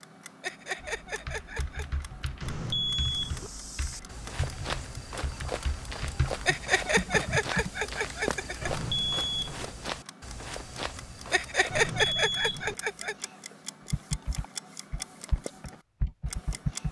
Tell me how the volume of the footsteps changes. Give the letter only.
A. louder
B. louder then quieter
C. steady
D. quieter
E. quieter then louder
C.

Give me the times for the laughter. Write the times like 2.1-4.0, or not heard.
0.4-2.0, 6.5-8.7, 11.3-13.2.